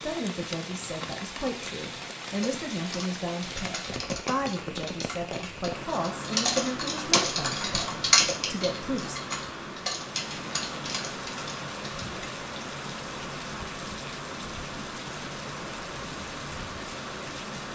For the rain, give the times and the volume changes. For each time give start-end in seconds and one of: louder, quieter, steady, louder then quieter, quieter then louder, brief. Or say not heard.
0.0-17.7 steady.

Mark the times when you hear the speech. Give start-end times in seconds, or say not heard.
0.0-9.2.